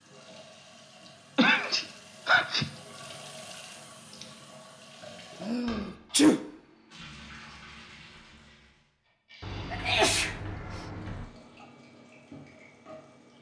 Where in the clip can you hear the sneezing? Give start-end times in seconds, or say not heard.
1.4-2.7, 5.4-6.4, 9.7-10.3.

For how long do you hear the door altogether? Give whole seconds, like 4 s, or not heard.
2 s.